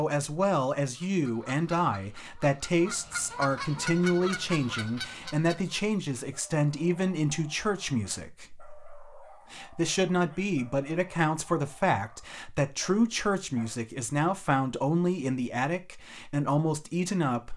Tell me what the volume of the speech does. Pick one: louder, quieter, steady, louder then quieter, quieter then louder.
steady.